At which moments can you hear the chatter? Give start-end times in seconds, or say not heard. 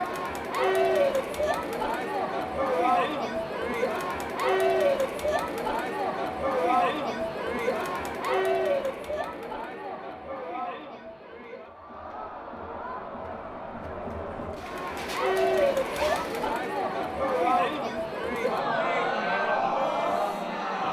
0.0-20.8.